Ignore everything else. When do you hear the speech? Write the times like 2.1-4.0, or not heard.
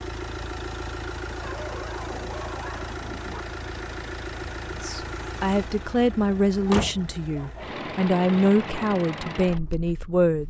4.8-10.4.